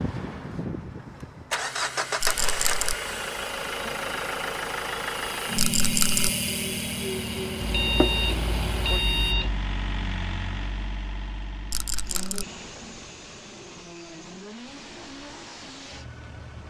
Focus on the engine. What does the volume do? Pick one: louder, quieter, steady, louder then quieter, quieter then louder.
quieter.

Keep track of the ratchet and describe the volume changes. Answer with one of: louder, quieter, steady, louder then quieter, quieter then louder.
louder then quieter.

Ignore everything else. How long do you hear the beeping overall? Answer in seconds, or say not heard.
2 s.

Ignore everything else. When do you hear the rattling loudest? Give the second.
6 s.